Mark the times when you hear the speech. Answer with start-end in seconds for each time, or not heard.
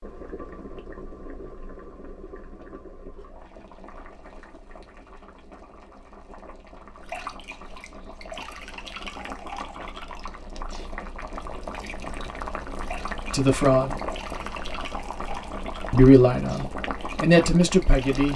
13.3-13.9, 15.9-18.3.